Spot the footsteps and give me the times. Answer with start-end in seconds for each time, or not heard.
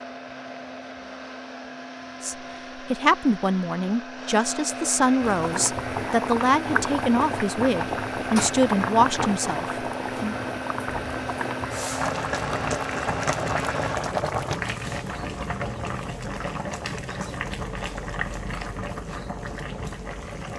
not heard.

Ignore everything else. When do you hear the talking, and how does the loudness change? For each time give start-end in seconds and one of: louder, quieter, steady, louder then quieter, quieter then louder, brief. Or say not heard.
2.2-10.4 steady.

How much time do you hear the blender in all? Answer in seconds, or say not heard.
14 s.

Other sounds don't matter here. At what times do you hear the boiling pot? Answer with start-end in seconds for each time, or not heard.
5.2-20.5.